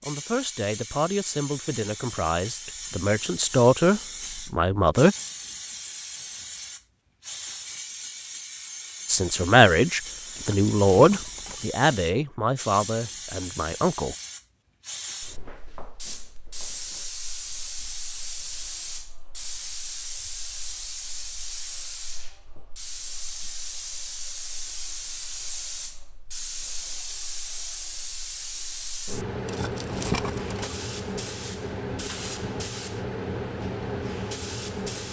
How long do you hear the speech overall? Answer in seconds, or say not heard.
10 s.